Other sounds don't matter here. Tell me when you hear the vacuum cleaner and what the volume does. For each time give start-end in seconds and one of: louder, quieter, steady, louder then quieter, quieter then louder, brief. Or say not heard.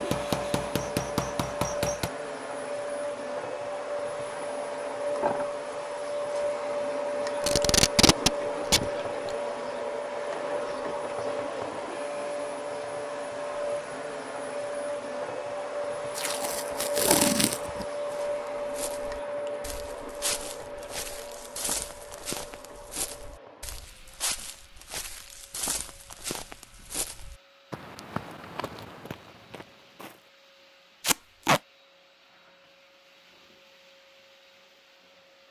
0.0-35.4 quieter.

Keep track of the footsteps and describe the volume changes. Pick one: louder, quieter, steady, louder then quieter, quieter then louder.
steady.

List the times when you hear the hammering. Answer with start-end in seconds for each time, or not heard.
0.0-2.1.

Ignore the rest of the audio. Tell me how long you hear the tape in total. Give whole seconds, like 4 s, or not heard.
4 s.